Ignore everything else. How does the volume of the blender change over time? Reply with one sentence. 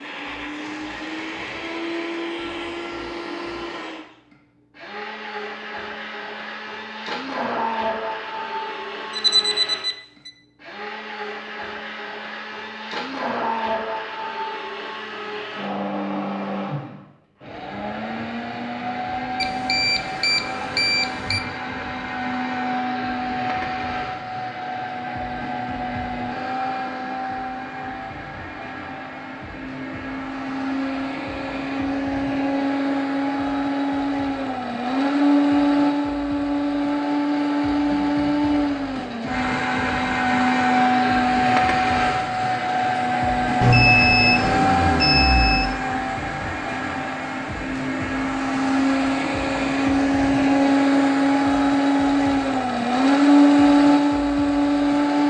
The volume of the blender goes up.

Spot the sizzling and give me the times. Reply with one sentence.
You can't hear the sizzling here.